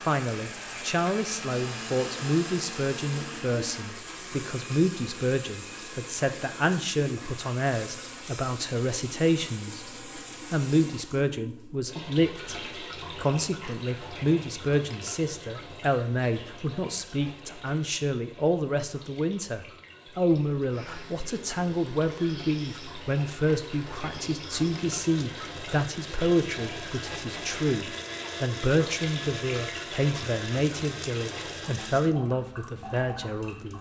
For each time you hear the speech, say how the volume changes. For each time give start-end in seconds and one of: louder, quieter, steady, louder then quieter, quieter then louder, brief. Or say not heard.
0.0-9.8 steady
10.5-33.7 steady.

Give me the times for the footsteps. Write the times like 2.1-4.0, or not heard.
not heard.